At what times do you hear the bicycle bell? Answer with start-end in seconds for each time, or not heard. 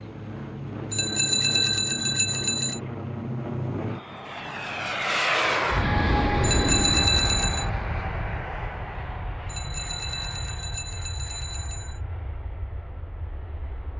0.9-2.8, 6.4-7.7, 9.4-12.0.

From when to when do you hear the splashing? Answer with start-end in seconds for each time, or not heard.
not heard.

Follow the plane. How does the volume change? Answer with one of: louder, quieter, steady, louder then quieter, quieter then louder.
louder then quieter.